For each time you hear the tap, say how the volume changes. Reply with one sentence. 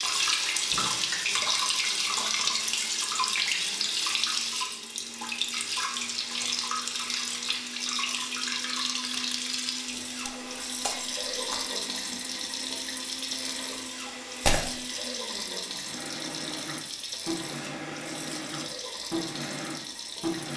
The tap can be heard from 0.0 to 20.5 s, getting quieter.